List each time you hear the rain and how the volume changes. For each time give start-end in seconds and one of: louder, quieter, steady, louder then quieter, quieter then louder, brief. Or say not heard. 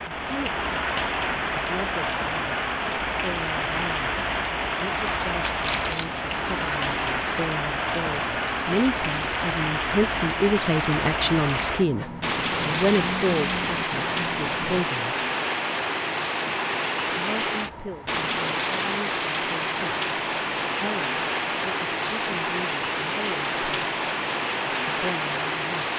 0.0-25.9 steady.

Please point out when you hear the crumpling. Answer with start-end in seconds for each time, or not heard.
5.4-6.1.